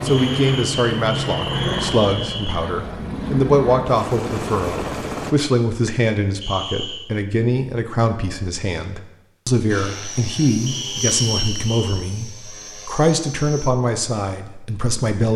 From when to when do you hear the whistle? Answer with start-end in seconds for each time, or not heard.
0.1-2.6, 6.4-7.0, 10.7-11.9.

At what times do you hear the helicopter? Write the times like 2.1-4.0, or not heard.
0.0-5.3, 9.7-13.7.